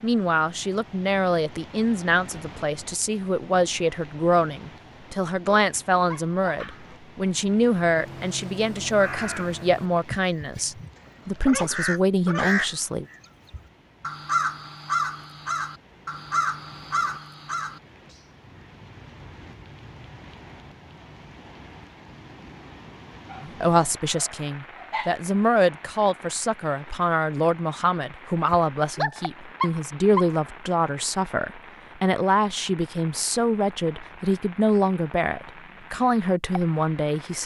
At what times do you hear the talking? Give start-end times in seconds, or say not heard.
0.0-13.1, 23.4-37.4.